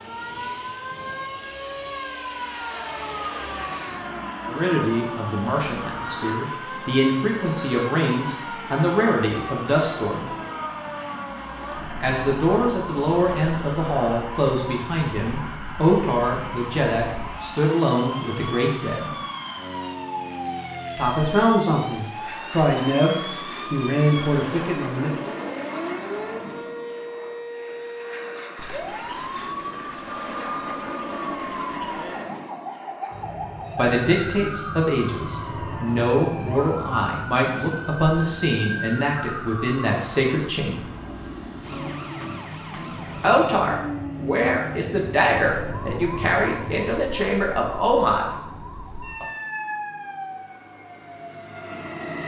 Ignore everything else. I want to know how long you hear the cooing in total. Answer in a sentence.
You can't hear the cooing here.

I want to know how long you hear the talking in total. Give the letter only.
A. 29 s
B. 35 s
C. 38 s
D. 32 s
A.